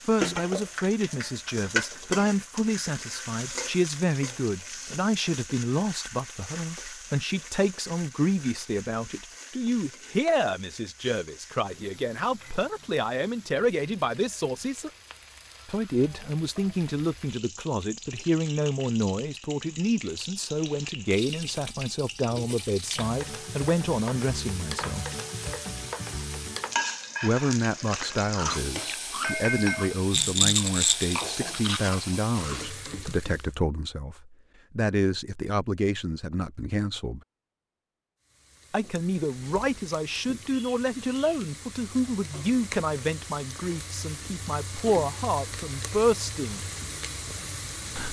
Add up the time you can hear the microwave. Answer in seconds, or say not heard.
not heard.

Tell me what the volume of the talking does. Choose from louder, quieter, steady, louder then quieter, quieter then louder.
steady.